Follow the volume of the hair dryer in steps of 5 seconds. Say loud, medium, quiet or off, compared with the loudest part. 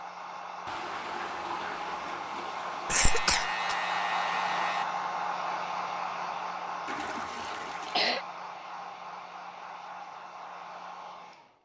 loud, loud, medium.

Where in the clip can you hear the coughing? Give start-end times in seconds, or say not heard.
2.9-3.8, 7.5-8.2.